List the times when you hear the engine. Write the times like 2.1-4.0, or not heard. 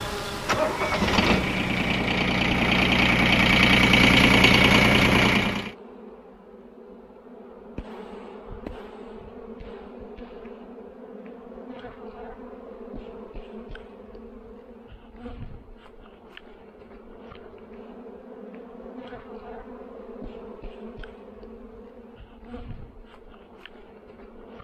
0.5-5.7.